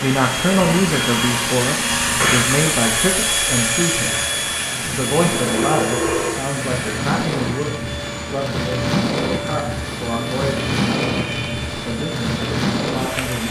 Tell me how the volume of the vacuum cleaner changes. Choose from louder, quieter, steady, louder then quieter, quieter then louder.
quieter.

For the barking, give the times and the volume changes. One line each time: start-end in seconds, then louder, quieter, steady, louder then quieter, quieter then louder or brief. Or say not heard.
not heard.